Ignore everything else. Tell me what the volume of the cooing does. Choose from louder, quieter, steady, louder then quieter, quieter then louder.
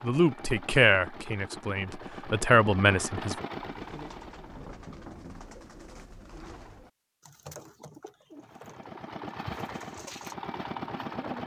steady.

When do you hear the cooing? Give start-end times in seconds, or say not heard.
3.6-11.4.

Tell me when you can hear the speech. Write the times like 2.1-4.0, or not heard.
0.0-3.4.